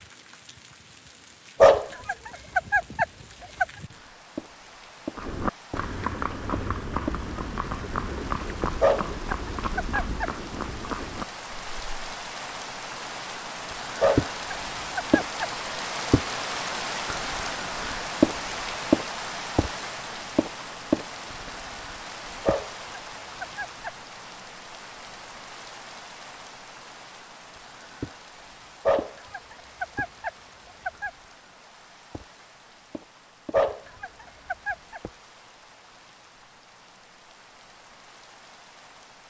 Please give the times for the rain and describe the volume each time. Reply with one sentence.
You can hear the rain from 0.0 to 39.2 s, getting louder then quieter.